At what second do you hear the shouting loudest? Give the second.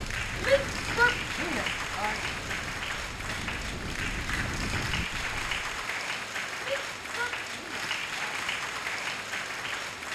1 s.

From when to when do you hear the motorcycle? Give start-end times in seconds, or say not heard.
not heard.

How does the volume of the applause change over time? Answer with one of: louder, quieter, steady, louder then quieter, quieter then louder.
steady.